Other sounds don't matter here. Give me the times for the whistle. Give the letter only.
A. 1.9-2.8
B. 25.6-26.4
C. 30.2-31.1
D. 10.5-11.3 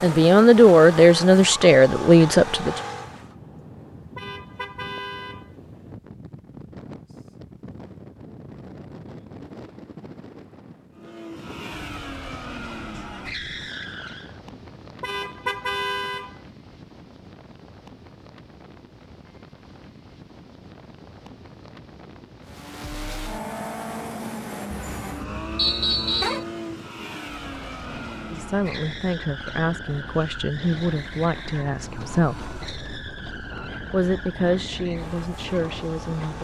B.